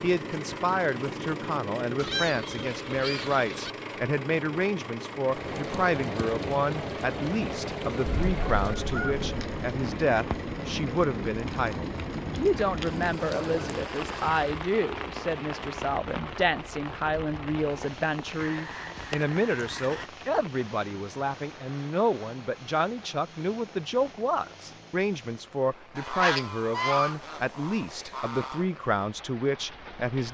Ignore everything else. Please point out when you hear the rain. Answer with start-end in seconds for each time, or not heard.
5.2-30.2.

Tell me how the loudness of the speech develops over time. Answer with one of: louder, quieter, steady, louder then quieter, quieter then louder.
steady.